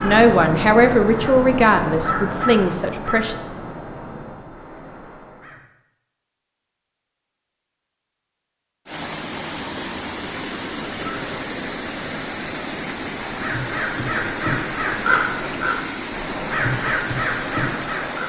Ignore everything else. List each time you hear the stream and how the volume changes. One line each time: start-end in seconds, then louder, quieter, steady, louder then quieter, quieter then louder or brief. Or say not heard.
8.8-18.2 steady.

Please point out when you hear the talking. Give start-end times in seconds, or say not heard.
0.0-3.4.